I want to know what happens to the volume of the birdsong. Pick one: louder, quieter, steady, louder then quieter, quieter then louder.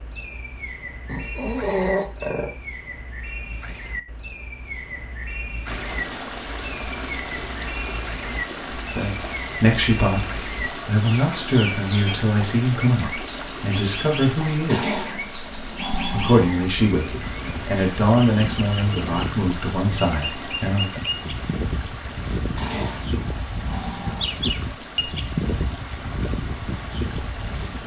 louder.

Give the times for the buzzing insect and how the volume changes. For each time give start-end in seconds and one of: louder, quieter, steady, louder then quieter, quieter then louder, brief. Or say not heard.
not heard.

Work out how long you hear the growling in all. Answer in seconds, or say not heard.
5 s.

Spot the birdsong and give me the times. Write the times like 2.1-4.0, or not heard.
0.0-27.8.